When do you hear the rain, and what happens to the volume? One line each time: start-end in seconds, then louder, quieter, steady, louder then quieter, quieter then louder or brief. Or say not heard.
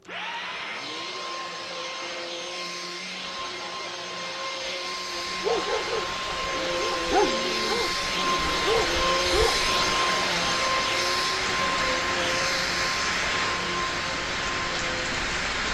4.9-15.6 louder.